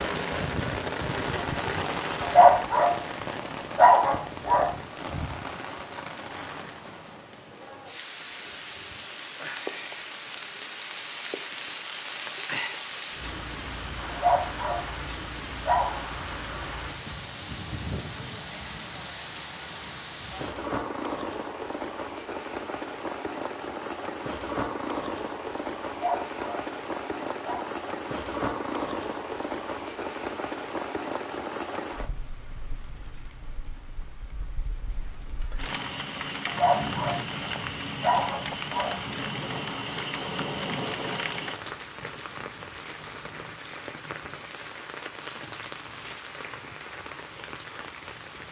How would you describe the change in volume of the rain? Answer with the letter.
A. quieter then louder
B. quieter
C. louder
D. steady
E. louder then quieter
D.